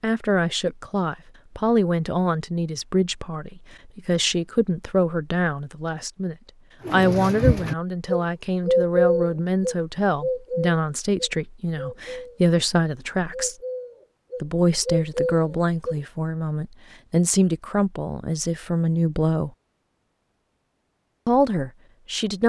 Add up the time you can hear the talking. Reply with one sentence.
You can hear the talking for 20 seconds altogether.